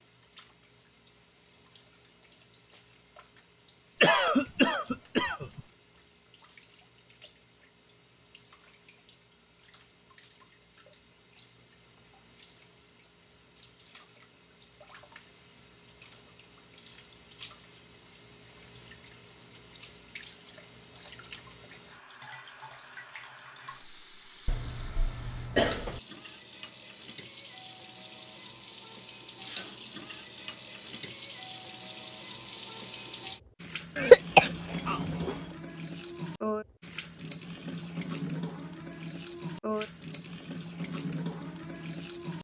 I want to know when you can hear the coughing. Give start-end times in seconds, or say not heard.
4.0-5.6, 24.4-26.0, 34.0-35.4.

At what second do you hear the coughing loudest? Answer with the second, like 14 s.
34 s.